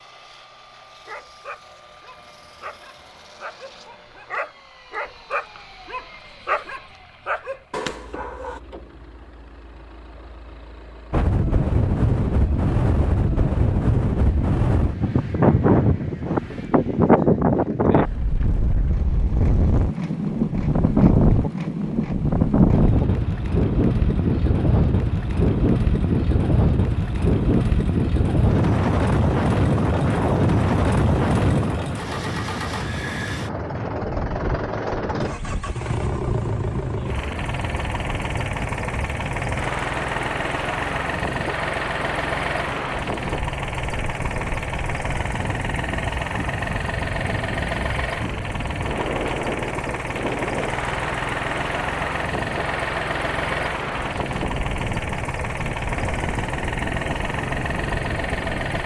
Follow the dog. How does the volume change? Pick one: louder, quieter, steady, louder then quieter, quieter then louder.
louder.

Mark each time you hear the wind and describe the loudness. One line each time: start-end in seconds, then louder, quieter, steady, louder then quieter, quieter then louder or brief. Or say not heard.
11.1-58.8 quieter.